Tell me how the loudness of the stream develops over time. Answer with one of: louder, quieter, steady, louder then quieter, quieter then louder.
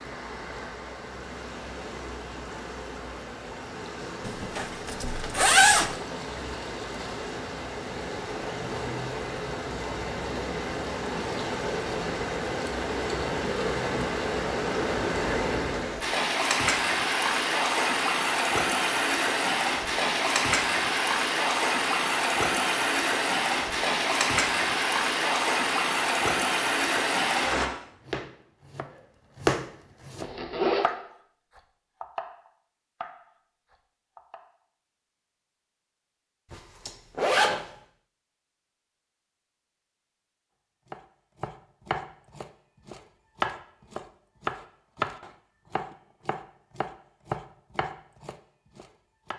louder.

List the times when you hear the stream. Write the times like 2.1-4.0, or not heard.
0.0-27.7.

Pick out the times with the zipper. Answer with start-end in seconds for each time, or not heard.
4.2-6.0, 30.2-30.9, 36.5-37.6.